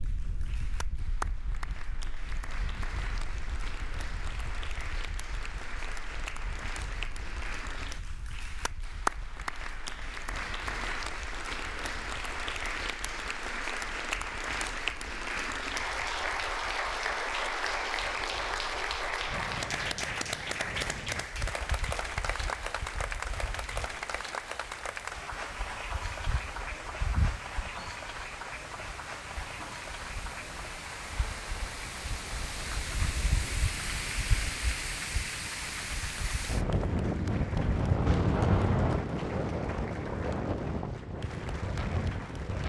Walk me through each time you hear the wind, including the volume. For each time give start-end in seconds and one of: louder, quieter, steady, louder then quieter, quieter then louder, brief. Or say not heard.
0.0-42.6 quieter then louder.